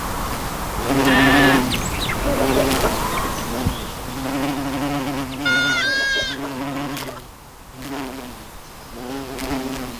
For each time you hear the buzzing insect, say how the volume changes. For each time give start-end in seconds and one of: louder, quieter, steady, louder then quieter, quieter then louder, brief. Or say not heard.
0.0-9.9 quieter.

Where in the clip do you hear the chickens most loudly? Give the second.
2 s.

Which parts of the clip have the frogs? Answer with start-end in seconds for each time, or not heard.
not heard.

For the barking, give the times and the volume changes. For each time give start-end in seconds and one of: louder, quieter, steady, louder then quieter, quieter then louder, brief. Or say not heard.
not heard.